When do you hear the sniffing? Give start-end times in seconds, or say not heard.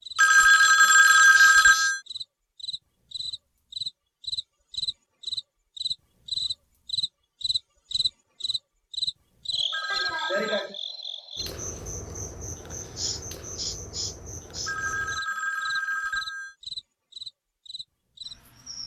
1.3-1.9, 9.9-10.8, 12.9-14.8.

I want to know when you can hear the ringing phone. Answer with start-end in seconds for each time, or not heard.
0.1-2.0, 9.7-10.7, 14.7-16.6.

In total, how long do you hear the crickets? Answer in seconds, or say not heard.
19 s.